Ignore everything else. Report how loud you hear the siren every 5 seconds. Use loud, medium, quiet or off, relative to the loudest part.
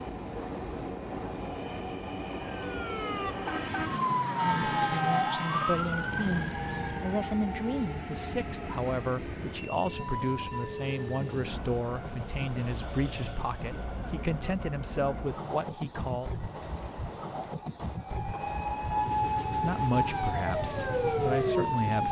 loud, loud, off, loud, loud.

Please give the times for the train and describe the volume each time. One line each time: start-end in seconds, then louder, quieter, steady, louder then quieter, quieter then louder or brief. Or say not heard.
0.0-22.0 steady.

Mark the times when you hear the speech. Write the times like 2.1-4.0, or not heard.
4.4-16.3, 19.5-22.0.